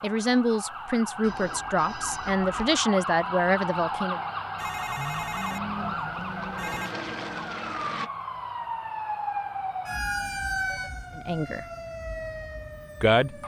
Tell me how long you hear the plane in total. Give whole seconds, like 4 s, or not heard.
3 s.